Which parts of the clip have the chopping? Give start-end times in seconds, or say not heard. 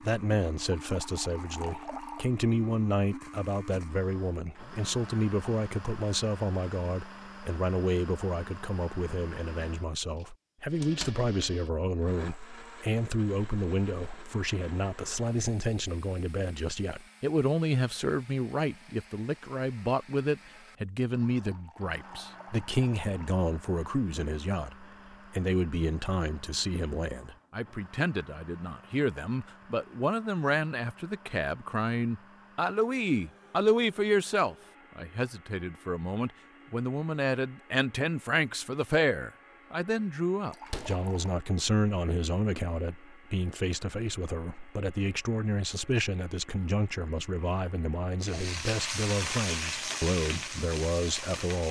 not heard.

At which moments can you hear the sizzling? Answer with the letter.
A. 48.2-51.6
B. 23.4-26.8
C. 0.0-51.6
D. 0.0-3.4
A.